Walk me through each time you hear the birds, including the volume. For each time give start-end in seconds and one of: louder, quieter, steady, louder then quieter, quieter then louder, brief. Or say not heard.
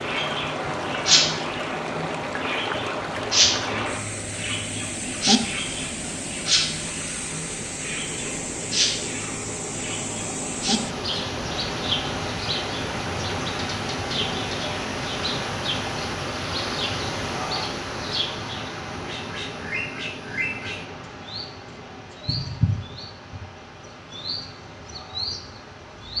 0.0-26.1 quieter.